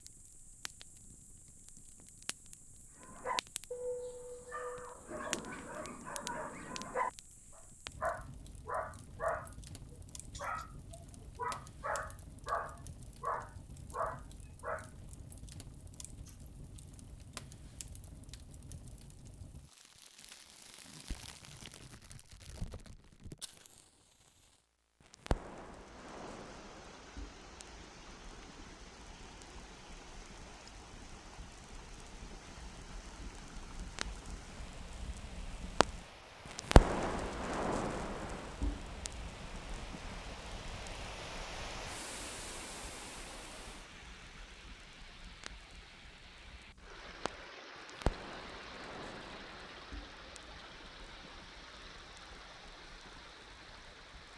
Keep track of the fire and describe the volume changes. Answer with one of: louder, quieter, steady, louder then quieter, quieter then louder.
louder then quieter.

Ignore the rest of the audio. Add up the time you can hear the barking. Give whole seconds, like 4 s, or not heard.
12 s.